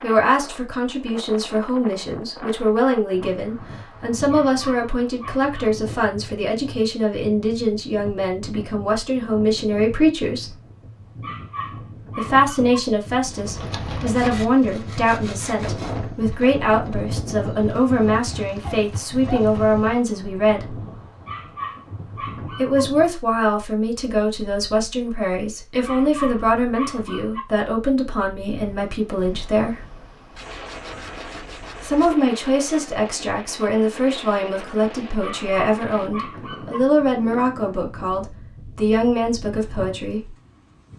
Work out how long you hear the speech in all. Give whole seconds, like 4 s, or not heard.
35 s.